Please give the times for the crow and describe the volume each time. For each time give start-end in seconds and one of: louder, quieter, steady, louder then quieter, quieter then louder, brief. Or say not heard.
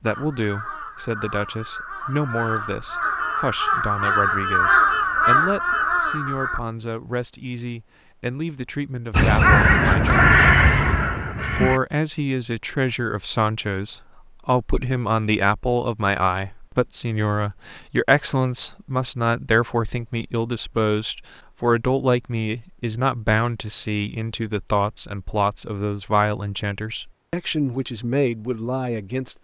0.1-6.6 louder
9.1-11.8 brief.